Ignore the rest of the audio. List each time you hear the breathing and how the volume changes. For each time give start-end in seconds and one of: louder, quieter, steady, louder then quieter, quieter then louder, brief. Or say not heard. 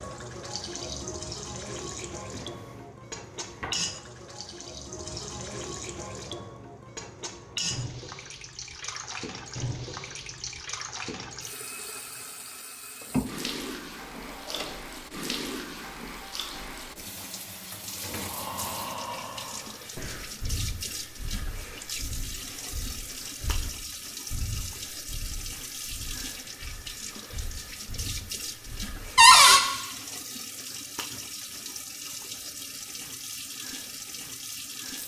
18.1-29.1 quieter.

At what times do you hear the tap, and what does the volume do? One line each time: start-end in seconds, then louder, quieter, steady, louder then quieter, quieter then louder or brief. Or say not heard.
0.0-35.0 steady.